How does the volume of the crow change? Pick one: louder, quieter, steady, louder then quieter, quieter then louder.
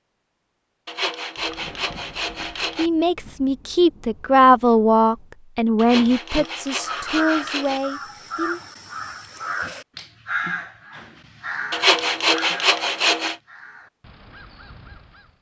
quieter.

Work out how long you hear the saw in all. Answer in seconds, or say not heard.
6 s.